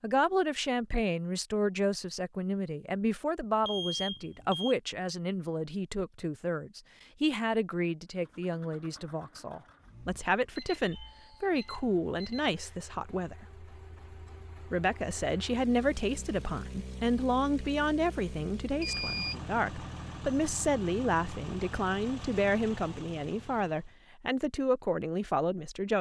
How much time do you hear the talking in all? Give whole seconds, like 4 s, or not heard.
25 s.